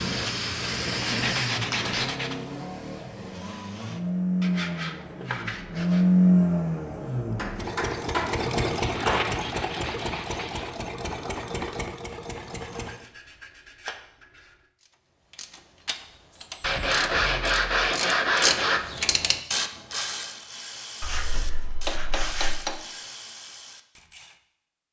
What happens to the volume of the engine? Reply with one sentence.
The volume of the engine goes up, then down.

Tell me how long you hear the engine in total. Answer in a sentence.
The engine can be heard for 13 seconds in total.